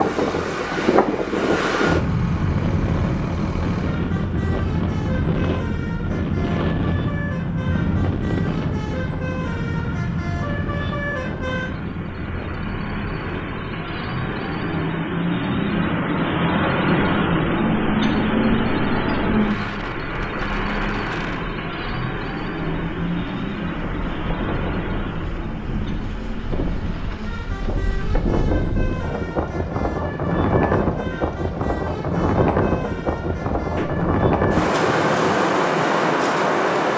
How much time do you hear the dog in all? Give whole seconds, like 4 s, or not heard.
not heard.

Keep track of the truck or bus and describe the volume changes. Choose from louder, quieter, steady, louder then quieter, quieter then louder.
louder then quieter.